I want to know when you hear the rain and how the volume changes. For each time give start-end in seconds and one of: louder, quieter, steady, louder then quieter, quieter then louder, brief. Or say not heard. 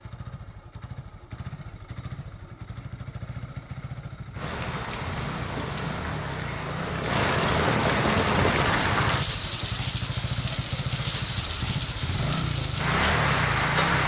4.3-14.0 louder.